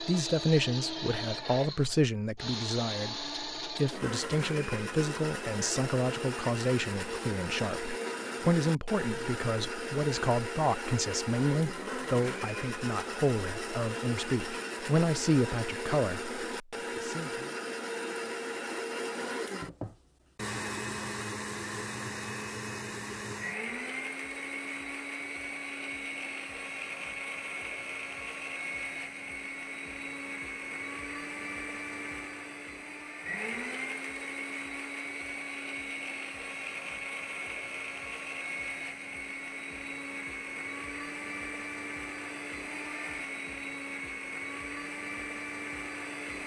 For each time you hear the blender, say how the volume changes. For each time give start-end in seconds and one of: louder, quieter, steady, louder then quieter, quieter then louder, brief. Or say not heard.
0.0-46.4 steady.